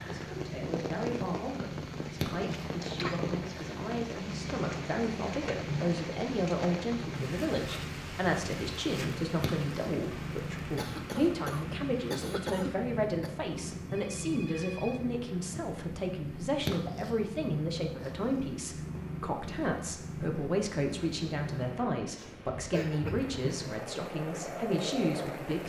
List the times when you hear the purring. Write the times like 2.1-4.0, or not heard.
0.0-25.6.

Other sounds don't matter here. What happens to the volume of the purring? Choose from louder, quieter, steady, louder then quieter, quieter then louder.
steady.